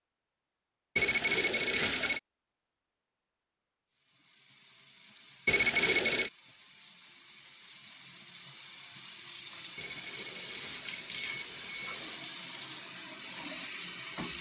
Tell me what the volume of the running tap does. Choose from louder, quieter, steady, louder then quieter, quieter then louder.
louder.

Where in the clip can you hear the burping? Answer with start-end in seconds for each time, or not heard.
not heard.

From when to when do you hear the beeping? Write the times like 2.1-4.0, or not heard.
0.9-2.2, 5.5-6.3, 9.8-12.3.